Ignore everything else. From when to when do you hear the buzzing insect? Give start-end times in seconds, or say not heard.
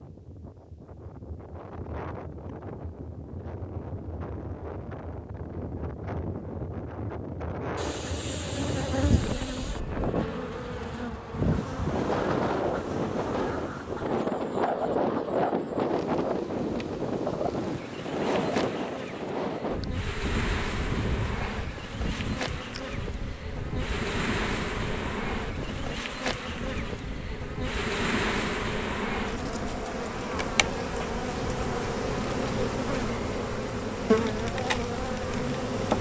7.8-35.9.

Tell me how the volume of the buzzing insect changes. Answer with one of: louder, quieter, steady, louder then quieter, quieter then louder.
louder.